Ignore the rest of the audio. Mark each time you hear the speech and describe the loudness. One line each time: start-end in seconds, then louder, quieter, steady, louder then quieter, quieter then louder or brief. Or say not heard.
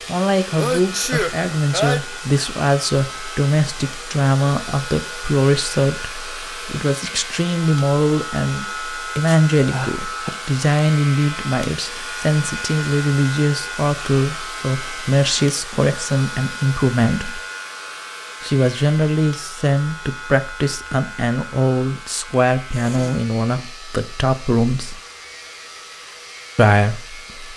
0.1-17.4 steady
18.4-25.0 steady
26.6-27.5 brief.